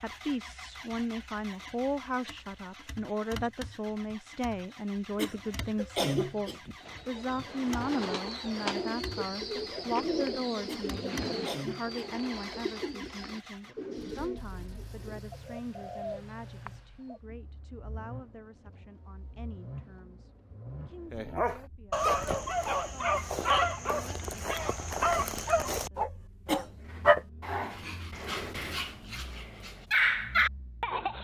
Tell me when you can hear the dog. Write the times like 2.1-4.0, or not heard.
21.1-31.1.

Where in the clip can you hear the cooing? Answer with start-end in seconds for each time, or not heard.
6.8-17.2.